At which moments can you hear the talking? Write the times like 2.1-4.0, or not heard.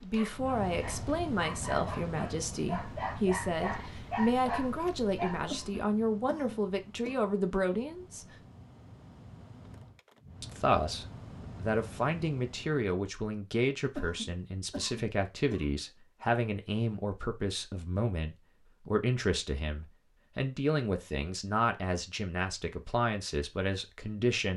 0.0-8.4, 10.4-24.5.